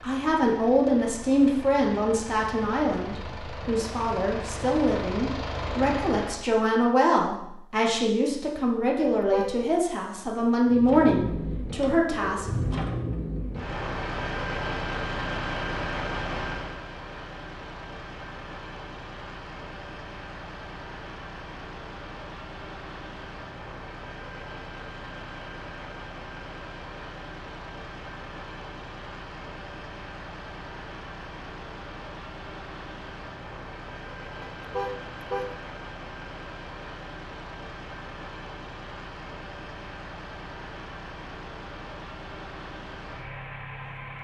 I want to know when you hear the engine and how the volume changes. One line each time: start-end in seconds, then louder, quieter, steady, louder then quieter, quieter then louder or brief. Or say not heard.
0.0-6.5 louder
10.7-44.2 quieter.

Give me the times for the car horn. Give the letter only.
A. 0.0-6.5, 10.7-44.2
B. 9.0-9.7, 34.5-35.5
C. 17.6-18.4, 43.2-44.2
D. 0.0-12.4
B.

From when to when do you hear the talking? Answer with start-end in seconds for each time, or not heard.
0.0-12.4.